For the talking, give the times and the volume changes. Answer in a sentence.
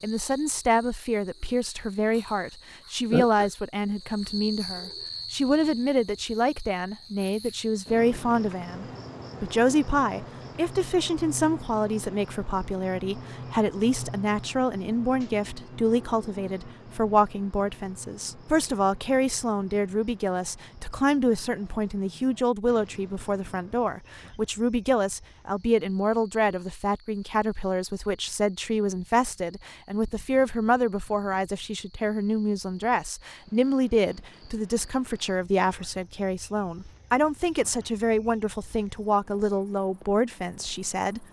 The talking can be heard from 0.0 to 41.2 s, at a steady volume.